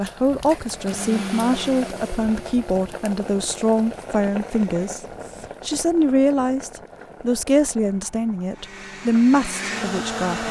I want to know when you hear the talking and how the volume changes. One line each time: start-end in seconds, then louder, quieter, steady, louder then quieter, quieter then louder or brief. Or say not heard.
0.0-10.4 steady.